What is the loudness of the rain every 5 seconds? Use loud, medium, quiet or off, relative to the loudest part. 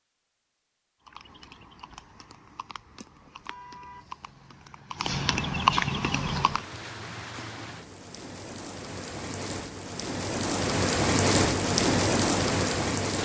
off, quiet, loud.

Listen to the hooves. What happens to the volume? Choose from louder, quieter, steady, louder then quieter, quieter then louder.
louder.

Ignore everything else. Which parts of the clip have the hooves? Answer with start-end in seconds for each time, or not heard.
1.1-6.6.